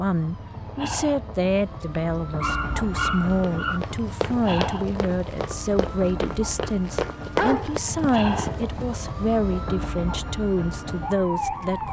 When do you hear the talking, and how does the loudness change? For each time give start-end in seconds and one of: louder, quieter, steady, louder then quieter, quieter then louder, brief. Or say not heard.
0.0-11.8 steady.